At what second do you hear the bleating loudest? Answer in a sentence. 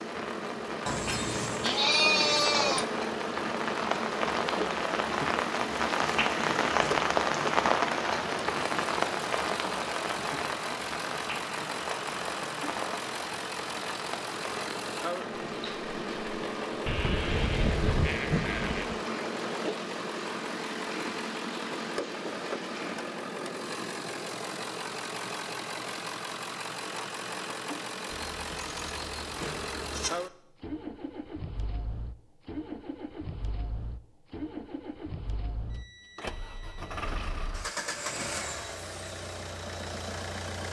The loudest moment of the bleating is at 2 seconds.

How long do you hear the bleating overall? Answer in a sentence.
The bleating can be heard for 6 seconds in total.